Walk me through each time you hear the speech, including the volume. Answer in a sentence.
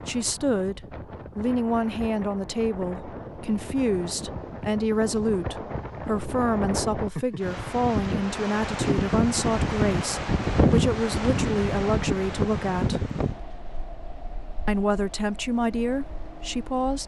You can hear the speech from 0.1 to 13.1 s, at a steady volume; and briefly from 14.7 to 17.0 s.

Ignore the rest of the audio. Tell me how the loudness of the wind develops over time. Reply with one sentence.
The volume of the wind goes up, then down.